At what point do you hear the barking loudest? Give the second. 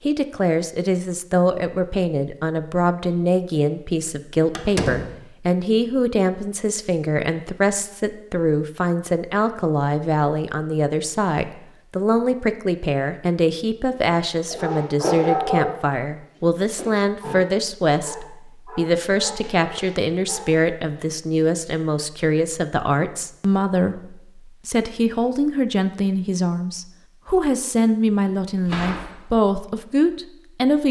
15 s.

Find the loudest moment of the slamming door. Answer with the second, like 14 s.
5 s.